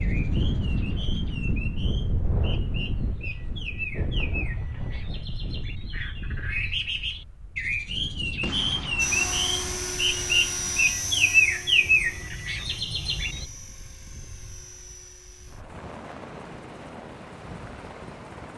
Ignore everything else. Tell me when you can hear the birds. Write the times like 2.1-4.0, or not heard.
0.0-13.4.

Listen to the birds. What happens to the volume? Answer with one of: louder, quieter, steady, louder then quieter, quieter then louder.
louder.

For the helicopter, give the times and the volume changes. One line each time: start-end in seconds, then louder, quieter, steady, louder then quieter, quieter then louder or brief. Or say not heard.
8.9-18.5 quieter.